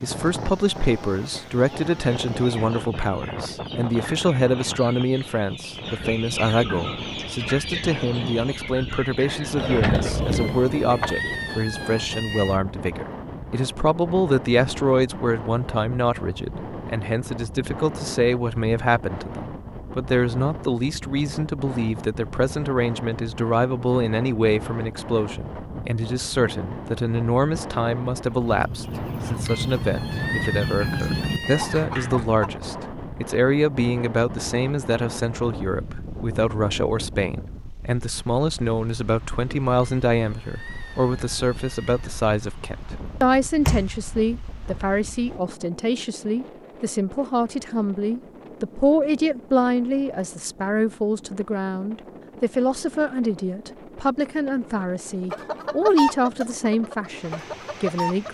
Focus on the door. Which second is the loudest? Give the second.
10 s.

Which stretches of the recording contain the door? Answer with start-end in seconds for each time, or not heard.
9.6-11.2, 31.7-32.4, 43.6-45.0.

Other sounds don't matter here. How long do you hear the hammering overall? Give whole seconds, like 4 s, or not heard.
not heard.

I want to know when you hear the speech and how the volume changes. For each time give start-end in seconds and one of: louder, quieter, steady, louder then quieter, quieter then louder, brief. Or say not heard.
0.0-58.2 steady.